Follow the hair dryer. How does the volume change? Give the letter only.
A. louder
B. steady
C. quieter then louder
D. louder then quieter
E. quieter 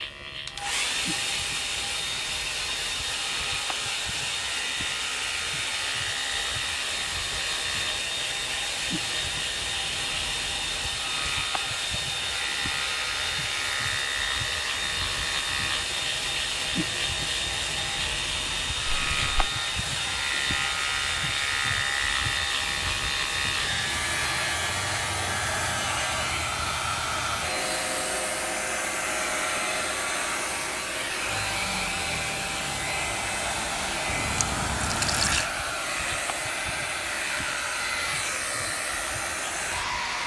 B.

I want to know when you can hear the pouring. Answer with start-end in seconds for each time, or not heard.
34.0-35.5.